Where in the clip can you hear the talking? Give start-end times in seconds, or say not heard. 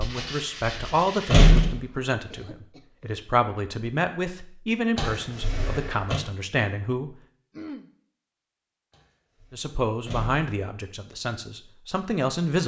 0.0-7.2, 9.5-12.6.